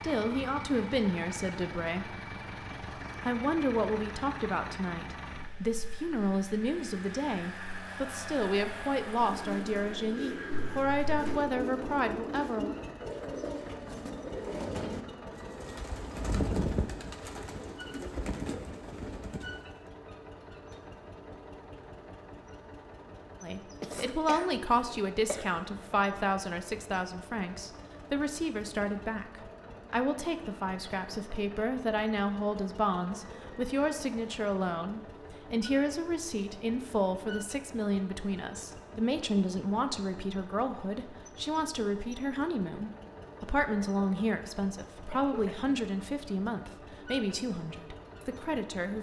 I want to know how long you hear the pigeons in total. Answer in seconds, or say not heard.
11 s.